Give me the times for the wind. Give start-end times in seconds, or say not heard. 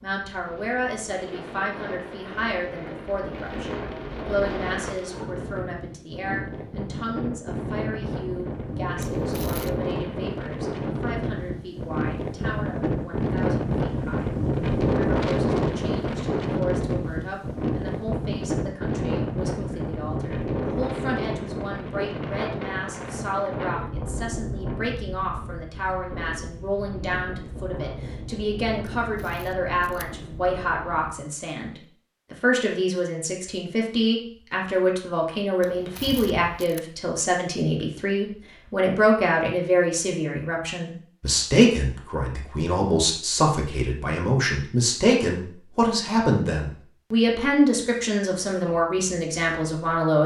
0.0-31.1.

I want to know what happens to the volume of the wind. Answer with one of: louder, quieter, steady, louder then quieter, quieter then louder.
louder then quieter.